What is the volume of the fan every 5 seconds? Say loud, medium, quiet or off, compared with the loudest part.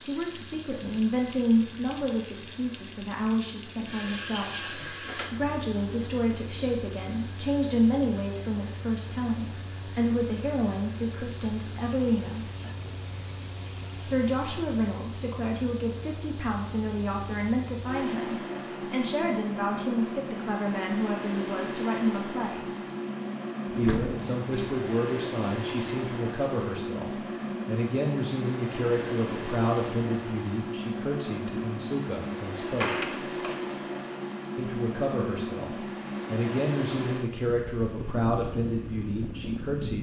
quiet, medium, medium, loud, loud, loud, loud, loud.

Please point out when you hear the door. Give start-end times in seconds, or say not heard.
4.6-5.6, 23.6-24.3, 32.6-33.6.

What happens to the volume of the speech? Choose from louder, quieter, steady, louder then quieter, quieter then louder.
steady.